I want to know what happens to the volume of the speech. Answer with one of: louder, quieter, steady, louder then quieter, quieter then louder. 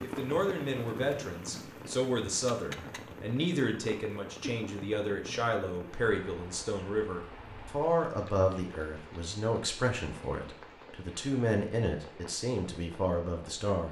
steady.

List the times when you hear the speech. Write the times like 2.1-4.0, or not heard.
0.0-13.8.